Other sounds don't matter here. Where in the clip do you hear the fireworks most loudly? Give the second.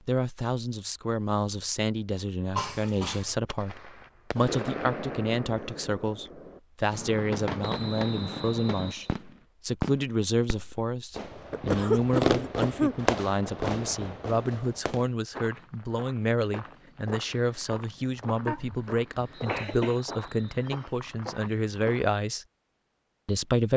12 s.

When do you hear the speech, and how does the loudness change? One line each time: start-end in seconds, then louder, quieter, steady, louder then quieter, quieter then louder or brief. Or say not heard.
0.1-22.4 steady
23.2-23.7 brief.